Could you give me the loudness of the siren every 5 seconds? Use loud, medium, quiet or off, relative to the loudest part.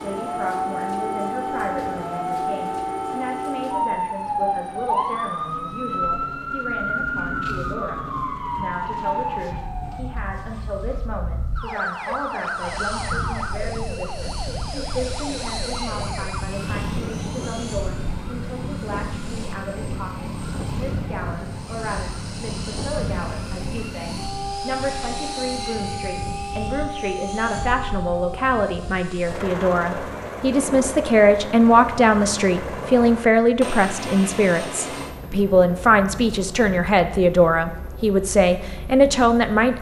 loud, loud, medium, medium, medium, medium, off, off.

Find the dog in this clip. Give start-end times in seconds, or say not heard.
not heard.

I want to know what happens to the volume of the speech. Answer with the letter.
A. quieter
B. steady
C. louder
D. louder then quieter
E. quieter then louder
C.